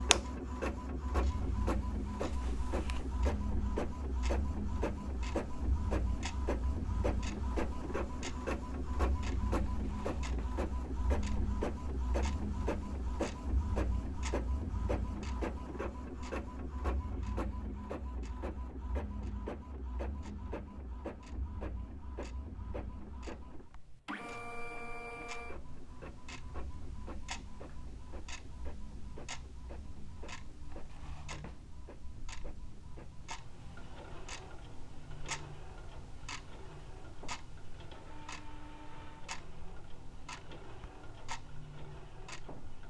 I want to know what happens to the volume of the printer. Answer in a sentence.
The volume of the printer goes down.